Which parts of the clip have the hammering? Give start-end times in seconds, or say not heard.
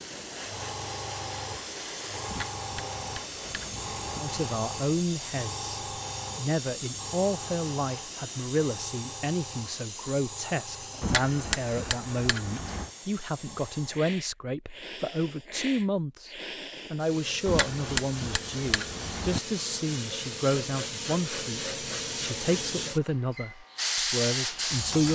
2.2-4.2, 11.0-12.9, 17.4-19.4.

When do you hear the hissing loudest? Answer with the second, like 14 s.
24 s.